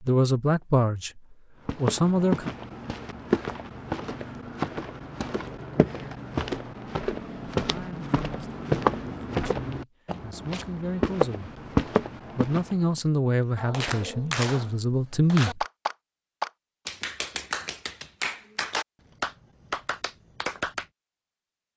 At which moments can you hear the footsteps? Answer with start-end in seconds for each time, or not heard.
1.6-12.8.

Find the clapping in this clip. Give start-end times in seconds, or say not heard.
13.6-20.9.